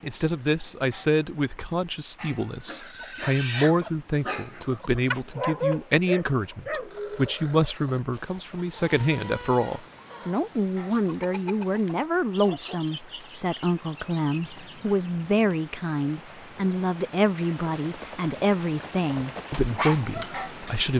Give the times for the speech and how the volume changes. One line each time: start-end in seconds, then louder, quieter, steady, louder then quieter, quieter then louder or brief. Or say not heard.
0.0-20.9 steady.